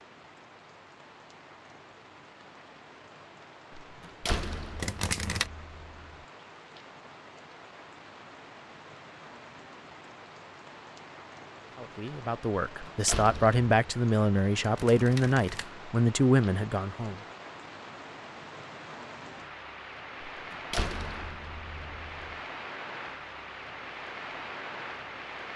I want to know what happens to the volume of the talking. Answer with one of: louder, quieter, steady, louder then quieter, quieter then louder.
louder.